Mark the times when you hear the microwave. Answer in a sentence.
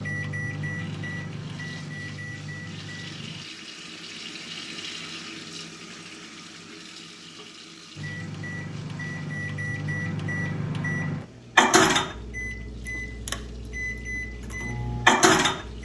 You can hear the microwave from 0.0 to 3.5 s and from 8.0 to 15.8 s.